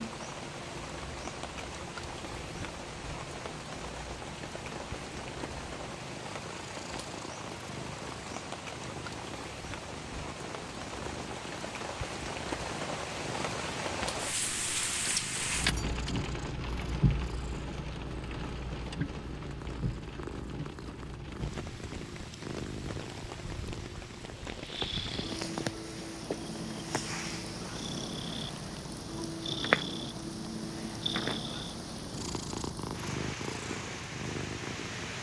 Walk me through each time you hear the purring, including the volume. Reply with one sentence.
You can hear the purring from 0.0 to 35.1 s, getting louder.